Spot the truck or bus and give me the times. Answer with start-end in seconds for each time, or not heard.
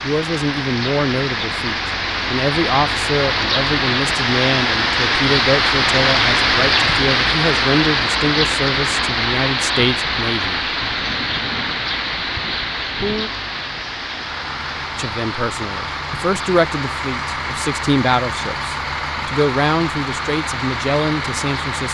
14.1-21.8.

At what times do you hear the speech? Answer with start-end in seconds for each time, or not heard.
0.0-10.6, 14.9-21.8.